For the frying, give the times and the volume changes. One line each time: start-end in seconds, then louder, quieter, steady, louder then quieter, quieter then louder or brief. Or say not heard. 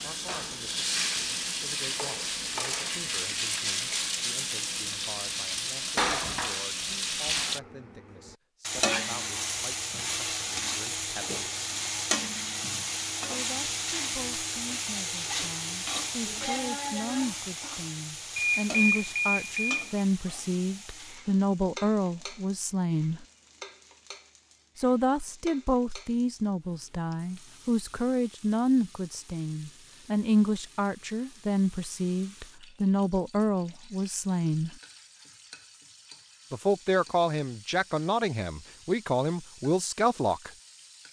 0.0-41.0 quieter.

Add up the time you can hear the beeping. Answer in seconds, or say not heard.
2 s.